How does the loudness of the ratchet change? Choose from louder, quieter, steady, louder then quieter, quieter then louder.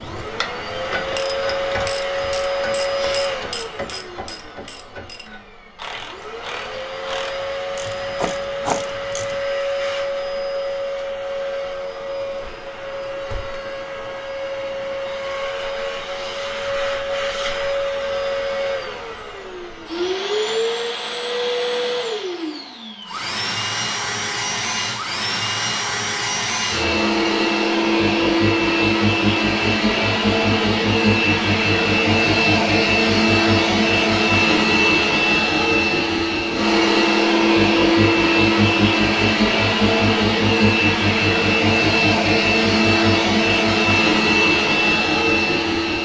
quieter then louder.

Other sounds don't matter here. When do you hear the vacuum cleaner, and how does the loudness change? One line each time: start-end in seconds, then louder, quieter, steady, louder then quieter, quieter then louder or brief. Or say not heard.
0.0-46.0 louder.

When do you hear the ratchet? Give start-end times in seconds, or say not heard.
0.0-9.4.